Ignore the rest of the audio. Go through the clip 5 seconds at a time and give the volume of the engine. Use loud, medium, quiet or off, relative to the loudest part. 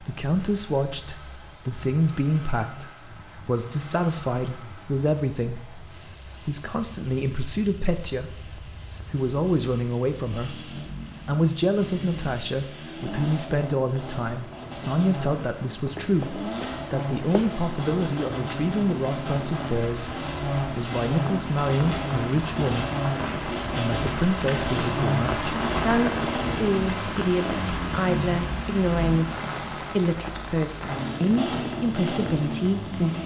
quiet, quiet, medium, loud, loud, loud, loud.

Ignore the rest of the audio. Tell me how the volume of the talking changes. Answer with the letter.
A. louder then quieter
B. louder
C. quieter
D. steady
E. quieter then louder
D.